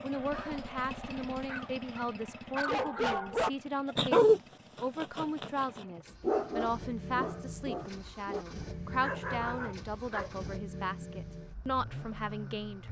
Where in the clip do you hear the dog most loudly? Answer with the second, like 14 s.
4 s.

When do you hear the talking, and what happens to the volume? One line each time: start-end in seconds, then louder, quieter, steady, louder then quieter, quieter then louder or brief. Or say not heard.
0.0-12.8 steady.